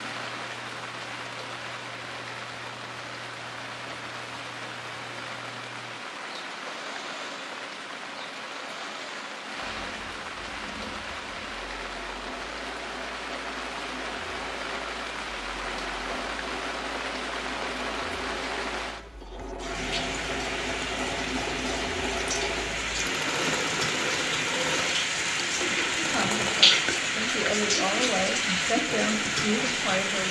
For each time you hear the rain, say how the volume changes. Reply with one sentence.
The rain can be heard from 0.0 to 30.2 s, getting louder.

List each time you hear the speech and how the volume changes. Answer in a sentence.
You can hear the speech from 25.9 to 30.2 s, getting louder.